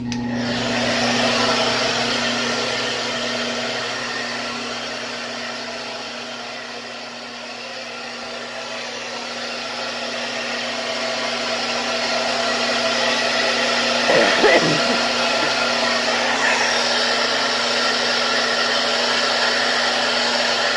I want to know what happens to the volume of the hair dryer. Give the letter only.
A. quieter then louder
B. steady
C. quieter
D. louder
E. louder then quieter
A.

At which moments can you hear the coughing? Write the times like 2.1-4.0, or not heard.
14.1-15.7.